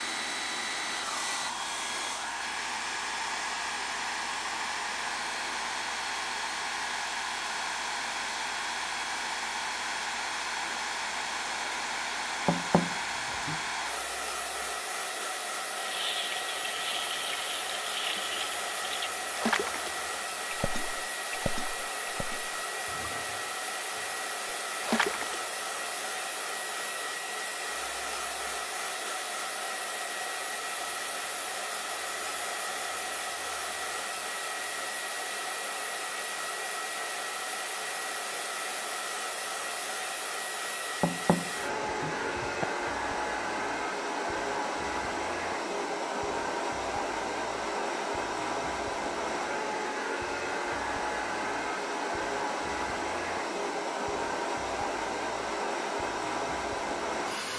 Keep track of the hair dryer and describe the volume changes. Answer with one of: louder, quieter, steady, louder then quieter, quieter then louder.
steady.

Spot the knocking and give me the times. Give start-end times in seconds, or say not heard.
12.4-13.6, 41.0-42.6.